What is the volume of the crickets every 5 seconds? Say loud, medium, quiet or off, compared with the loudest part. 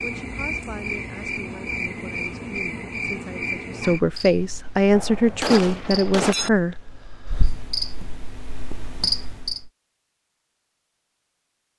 loud, loud, off.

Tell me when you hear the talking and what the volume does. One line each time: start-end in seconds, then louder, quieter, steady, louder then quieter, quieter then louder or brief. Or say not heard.
0.0-6.8 louder.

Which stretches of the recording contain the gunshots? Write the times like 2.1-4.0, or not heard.
4.9-6.5.